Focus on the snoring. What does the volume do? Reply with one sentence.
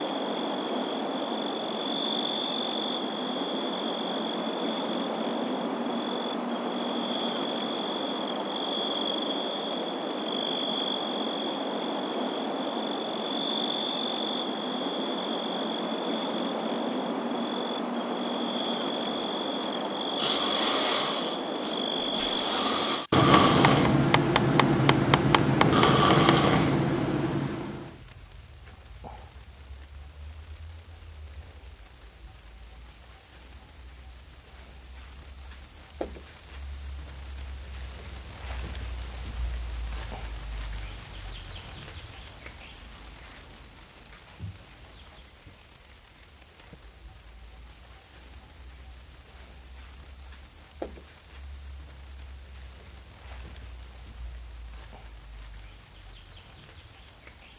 The volume of the snoring stays about the same.